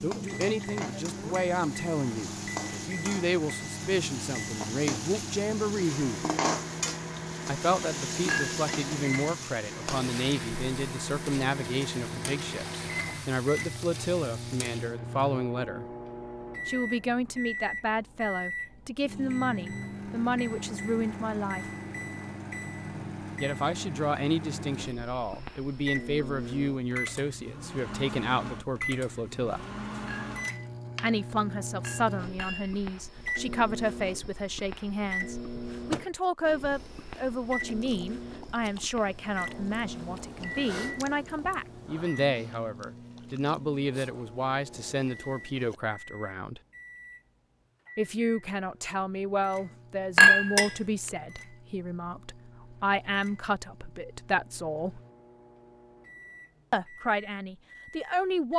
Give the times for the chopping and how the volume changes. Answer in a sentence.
The chopping can't be heard in this clip.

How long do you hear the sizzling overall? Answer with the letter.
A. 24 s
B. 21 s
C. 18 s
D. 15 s
D.